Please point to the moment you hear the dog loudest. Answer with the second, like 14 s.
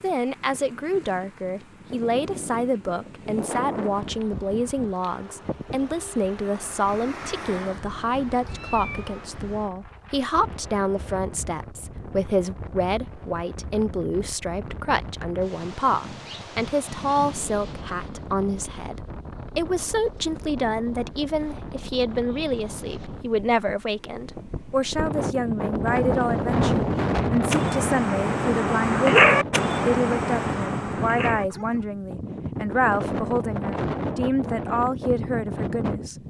29 s.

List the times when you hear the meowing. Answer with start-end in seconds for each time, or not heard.
8.4-9.2.